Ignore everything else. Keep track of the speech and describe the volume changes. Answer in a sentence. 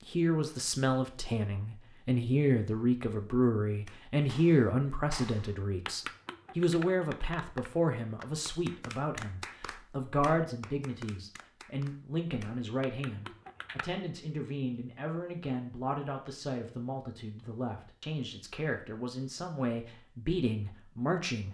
The volume of the speech goes down.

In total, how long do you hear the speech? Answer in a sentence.
You can hear the speech for 21 seconds altogether.